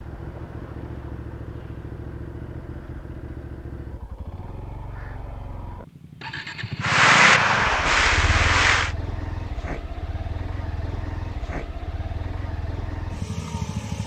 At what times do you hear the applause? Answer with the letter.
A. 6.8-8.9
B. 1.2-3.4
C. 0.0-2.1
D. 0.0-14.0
A.